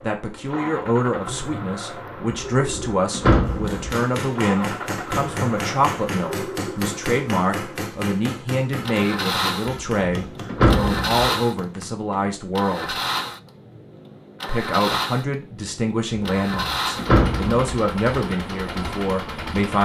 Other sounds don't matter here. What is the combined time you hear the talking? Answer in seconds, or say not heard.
18 s.